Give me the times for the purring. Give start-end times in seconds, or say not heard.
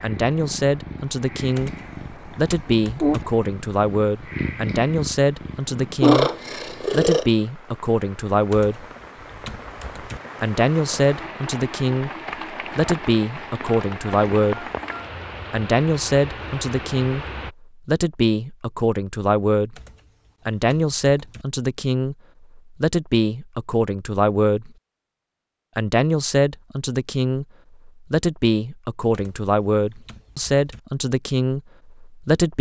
0.0-7.2.